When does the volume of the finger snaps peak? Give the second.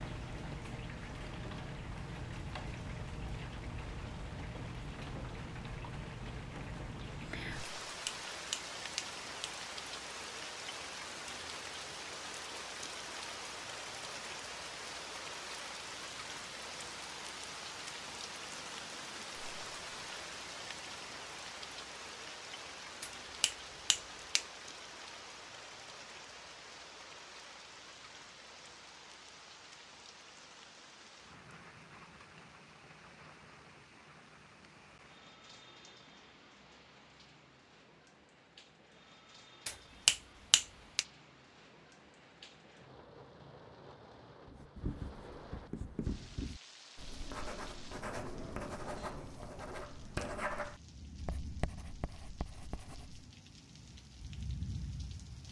40 s.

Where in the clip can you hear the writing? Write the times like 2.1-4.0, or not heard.
44.5-53.2.